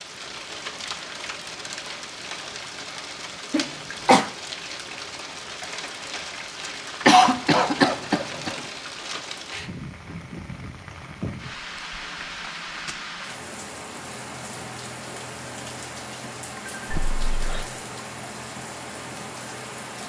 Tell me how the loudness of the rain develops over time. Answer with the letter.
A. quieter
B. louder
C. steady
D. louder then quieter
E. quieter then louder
C.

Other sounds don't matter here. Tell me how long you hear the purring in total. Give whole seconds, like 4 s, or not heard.
not heard.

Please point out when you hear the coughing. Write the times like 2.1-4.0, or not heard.
3.5-4.2, 7.0-8.6, 16.9-17.6.